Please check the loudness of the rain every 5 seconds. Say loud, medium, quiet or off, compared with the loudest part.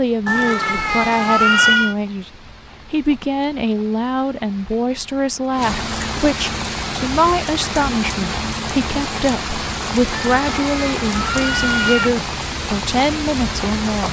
quiet, loud, loud.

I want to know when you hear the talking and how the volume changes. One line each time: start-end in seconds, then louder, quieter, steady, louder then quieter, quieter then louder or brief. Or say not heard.
0.0-14.0 steady.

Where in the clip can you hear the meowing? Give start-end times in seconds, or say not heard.
0.2-1.9, 10.1-12.1.